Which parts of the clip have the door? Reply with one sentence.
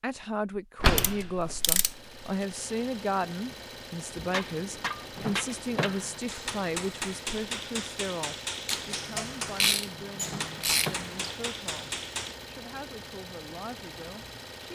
You can hear the door from 0.8 to 1.8 s, from 5.2 to 6.2 s and from 10.2 to 11.1 s.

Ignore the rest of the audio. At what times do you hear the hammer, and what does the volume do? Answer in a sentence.
You can hear the hammer from 4.2 to 12.3 s, at a steady volume.